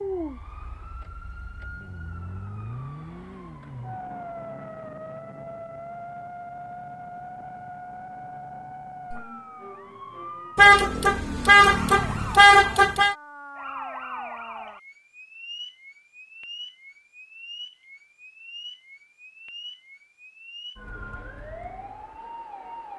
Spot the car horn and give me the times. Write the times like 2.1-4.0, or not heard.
10.6-13.2.